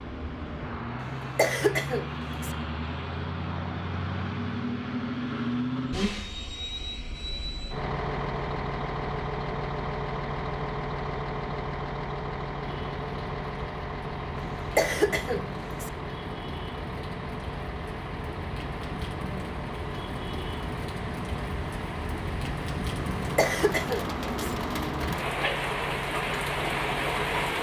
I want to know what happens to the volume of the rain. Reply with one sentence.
The volume of the rain goes up.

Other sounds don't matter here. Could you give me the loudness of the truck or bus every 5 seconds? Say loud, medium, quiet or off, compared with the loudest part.
loud, loud, loud, medium, medium, loud.